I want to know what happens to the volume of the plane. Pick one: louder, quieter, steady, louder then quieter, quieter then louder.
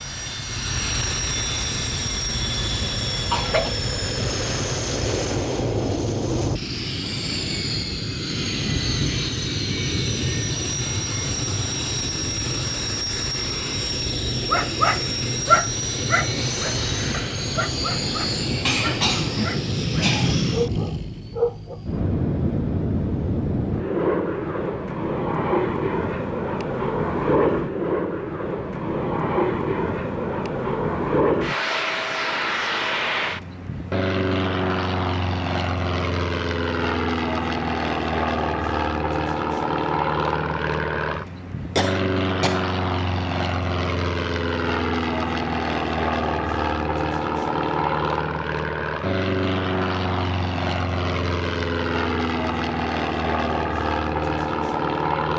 steady.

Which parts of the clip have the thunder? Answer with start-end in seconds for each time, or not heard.
not heard.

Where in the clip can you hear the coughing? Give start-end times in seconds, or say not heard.
2.8-3.8, 18.6-20.4, 41.8-42.6.